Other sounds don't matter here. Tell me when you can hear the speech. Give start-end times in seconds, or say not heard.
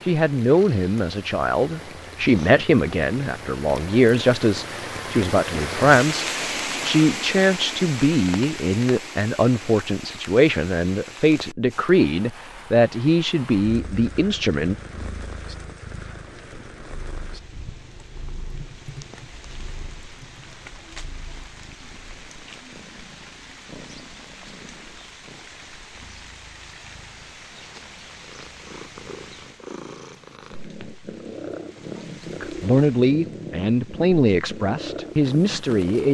0.0-14.8, 32.4-36.1.